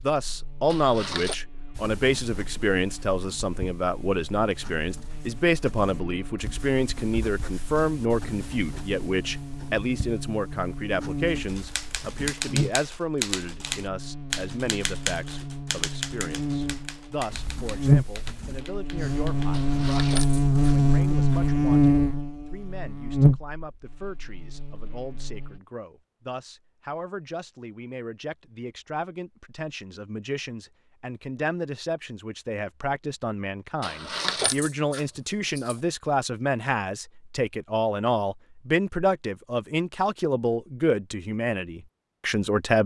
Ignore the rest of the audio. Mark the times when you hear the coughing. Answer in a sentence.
The coughing can't be heard in this clip.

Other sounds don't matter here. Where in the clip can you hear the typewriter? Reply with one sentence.
The typewriter can be heard from 11.4 to 19.6 s.